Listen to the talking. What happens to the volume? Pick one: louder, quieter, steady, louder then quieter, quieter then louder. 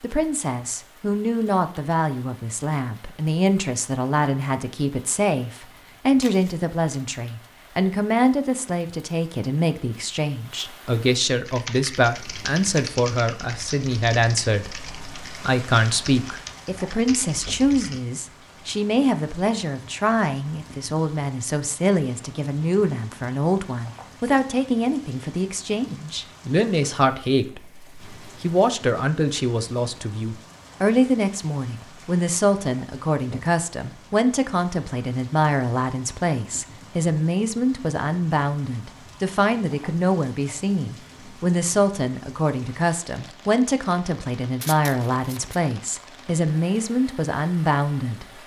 steady.